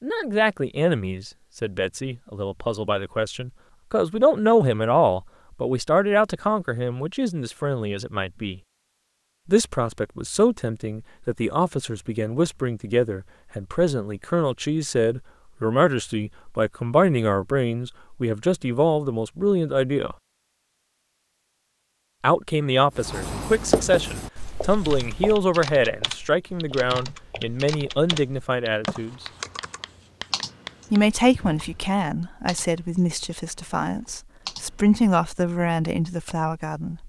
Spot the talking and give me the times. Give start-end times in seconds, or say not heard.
0.0-8.6, 9.4-20.1, 22.2-29.2, 30.9-37.0.